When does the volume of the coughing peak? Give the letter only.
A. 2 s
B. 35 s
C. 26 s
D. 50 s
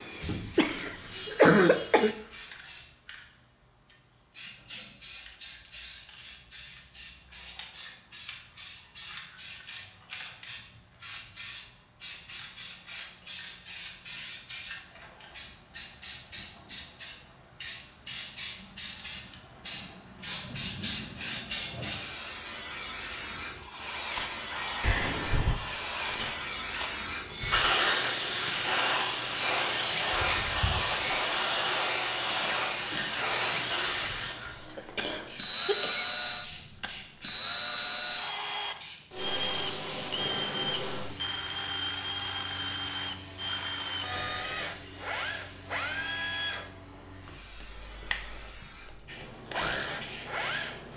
A.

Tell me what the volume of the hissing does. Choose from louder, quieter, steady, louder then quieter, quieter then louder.
louder then quieter.